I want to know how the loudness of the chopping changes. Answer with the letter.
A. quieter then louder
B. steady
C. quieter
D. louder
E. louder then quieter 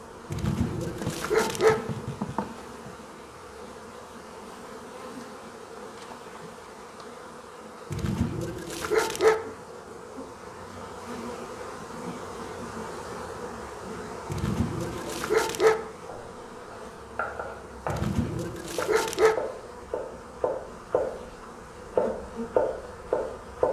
D.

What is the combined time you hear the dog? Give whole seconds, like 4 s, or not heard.
6 s.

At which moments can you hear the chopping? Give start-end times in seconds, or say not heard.
16.1-23.6.